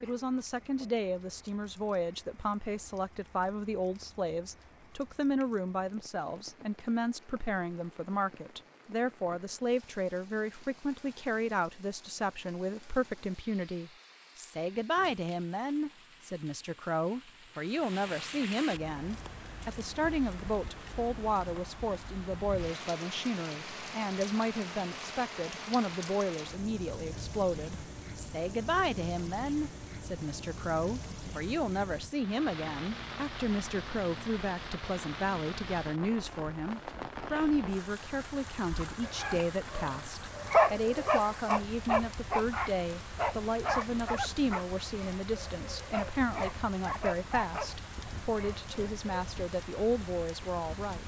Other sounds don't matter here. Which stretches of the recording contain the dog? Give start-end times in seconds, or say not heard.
38.7-49.1.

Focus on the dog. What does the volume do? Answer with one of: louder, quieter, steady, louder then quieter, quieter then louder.
quieter.